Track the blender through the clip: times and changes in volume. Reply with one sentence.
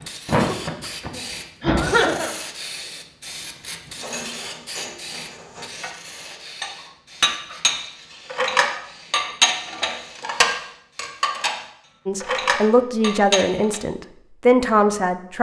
The blender can't be heard in this clip.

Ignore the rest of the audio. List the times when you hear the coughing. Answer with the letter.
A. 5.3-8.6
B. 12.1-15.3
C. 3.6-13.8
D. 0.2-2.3
D.